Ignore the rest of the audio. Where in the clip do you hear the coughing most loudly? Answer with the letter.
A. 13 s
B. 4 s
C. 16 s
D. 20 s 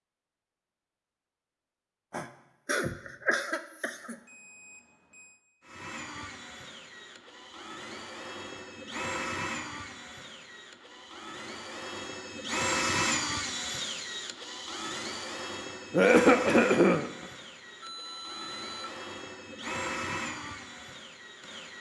C.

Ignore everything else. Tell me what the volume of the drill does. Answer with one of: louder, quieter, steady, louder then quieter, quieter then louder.
louder then quieter.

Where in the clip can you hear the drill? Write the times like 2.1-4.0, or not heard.
5.7-21.7.